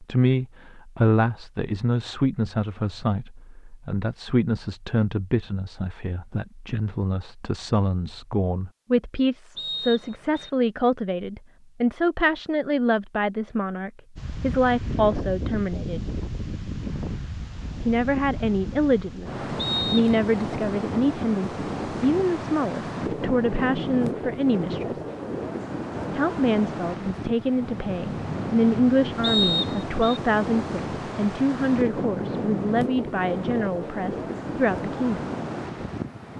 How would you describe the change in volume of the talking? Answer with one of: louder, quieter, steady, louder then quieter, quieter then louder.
steady.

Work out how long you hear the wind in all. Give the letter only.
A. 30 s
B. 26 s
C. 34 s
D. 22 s
D.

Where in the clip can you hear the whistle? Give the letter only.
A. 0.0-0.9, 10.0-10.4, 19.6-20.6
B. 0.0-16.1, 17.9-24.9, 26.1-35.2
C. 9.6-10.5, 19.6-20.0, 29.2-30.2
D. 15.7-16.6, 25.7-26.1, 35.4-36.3
C.